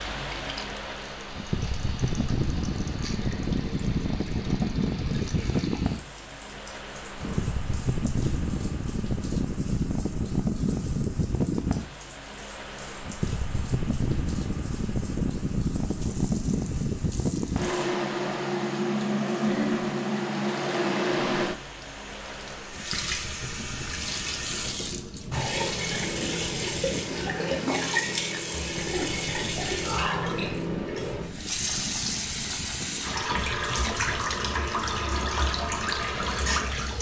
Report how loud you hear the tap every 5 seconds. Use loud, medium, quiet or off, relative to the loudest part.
quiet, quiet, quiet, quiet, medium, loud, loud, loud.